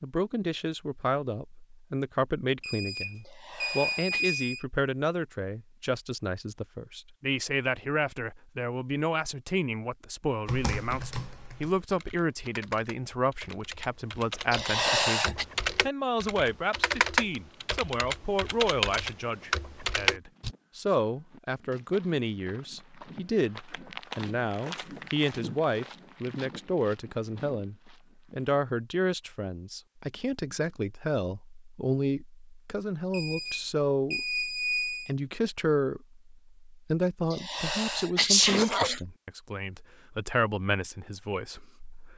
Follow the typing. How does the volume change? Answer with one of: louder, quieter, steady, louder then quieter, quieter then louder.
louder.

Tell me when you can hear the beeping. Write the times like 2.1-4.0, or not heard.
2.6-4.7, 33.1-35.1.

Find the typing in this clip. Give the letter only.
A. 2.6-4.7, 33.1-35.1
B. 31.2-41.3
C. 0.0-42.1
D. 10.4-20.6
D.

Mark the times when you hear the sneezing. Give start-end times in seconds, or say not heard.
3.2-4.4, 14.5-15.4, 37.3-39.0.